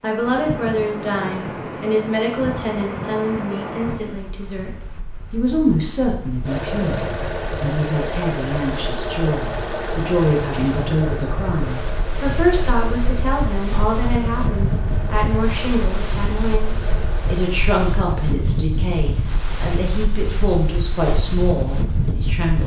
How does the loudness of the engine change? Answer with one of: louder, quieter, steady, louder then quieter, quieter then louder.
quieter.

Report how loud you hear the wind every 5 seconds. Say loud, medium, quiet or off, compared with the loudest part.
loud, medium, loud, loud, loud.